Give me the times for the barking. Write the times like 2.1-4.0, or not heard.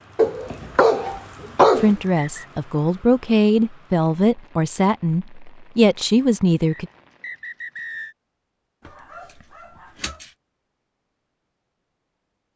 0.1-1.9, 8.8-10.3.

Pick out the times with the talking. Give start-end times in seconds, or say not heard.
1.8-6.9.